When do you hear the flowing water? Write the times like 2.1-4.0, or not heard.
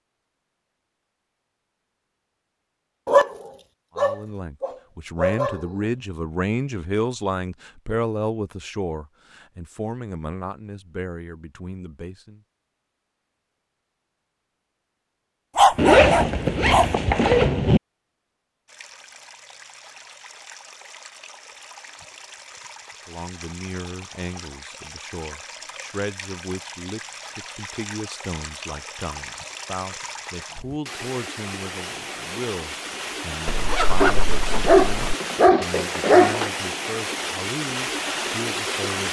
18.6-39.0.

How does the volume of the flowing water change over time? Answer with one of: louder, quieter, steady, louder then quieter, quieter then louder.
louder.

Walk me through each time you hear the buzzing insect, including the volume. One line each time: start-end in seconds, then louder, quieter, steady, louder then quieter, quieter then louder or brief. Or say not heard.
not heard.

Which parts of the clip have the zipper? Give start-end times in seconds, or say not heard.
15.8-17.8, 33.5-35.1.